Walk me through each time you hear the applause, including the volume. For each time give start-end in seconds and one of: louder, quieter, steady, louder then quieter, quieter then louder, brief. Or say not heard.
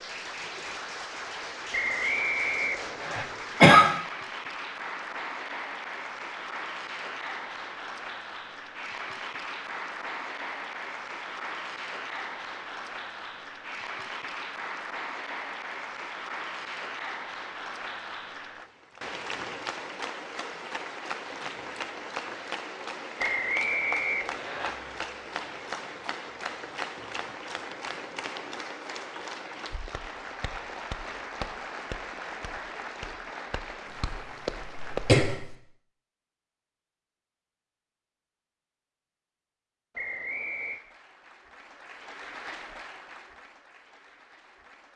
0.0-35.3 steady
40.5-44.9 louder then quieter.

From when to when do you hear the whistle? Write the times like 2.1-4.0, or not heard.
1.7-3.2, 23.1-24.7, 40.0-40.8.